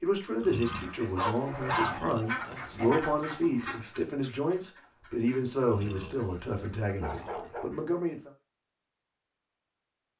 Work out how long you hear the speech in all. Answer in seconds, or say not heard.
8 s.